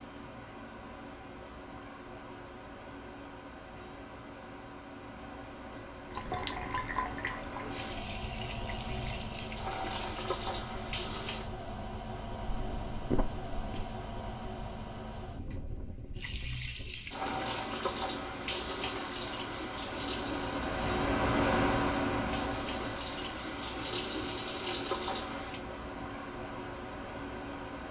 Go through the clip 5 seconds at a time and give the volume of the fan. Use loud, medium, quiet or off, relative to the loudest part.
quiet, medium, medium, medium, loud, medium.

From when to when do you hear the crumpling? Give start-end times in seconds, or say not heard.
12.7-13.9.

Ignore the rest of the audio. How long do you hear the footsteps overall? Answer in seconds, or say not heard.
not heard.